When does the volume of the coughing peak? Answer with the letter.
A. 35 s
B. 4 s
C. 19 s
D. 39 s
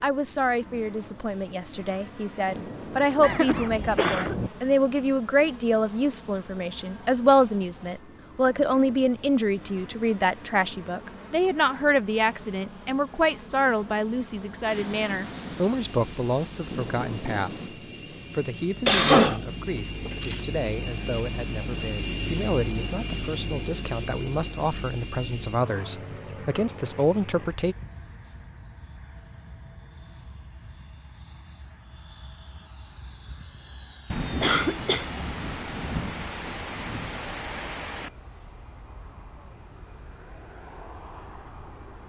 C.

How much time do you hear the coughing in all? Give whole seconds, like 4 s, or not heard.
3 s.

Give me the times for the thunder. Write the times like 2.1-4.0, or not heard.
2.5-4.5, 14.7-17.8, 34.1-38.1.